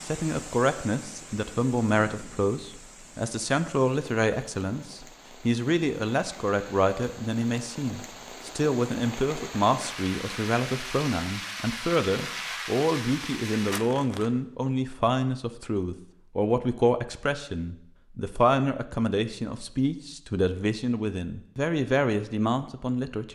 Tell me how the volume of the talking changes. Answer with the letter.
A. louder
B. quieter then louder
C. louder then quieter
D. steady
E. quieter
D.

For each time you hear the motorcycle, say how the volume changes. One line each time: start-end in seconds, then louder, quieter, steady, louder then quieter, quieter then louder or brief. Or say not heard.
not heard.